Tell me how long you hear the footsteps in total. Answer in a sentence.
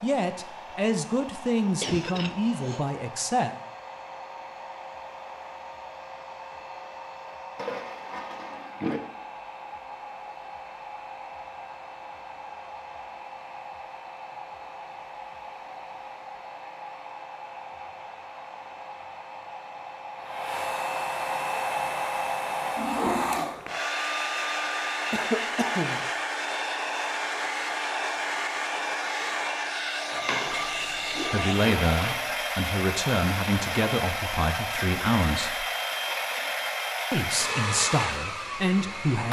The footsteps can't be heard in this clip.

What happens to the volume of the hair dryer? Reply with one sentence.
The volume of the hair dryer goes up.